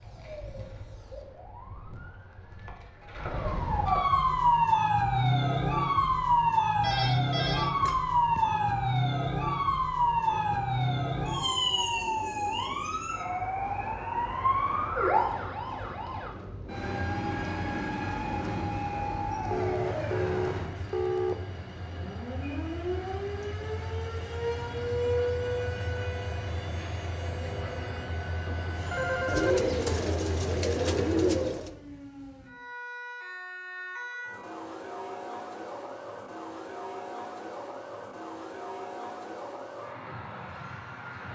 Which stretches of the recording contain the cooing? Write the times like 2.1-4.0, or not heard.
29.2-31.8.